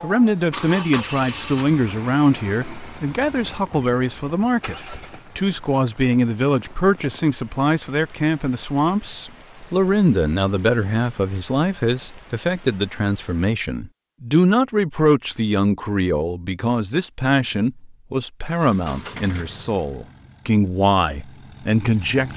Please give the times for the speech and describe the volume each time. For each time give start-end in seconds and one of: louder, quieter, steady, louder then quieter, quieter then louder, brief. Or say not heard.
0.0-22.3 steady.